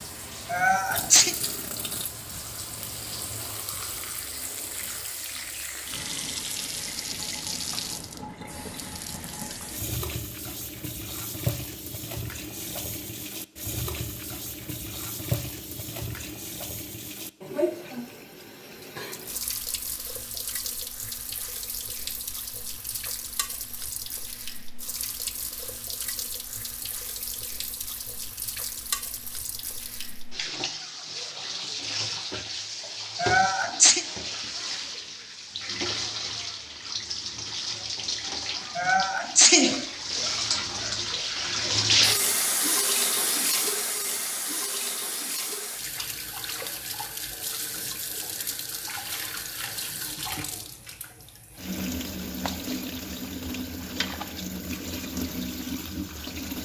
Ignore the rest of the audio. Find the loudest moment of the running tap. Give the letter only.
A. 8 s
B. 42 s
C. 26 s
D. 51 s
B.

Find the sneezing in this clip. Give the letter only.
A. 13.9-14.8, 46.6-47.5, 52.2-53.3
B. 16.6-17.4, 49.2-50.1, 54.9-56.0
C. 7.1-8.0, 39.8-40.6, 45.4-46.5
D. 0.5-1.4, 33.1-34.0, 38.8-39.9
D.